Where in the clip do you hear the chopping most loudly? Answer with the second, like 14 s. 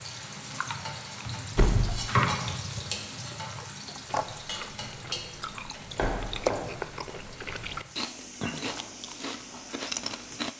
2 s.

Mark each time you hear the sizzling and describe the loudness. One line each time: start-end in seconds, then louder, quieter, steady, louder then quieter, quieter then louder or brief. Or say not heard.
0.0-10.5 quieter.